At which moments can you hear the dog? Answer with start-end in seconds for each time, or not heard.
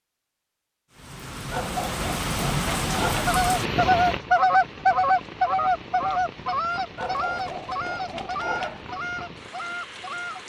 1.5-3.4, 7.0-8.8.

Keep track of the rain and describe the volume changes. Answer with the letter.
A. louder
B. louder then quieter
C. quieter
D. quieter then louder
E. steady
C.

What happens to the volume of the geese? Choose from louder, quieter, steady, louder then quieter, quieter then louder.
quieter.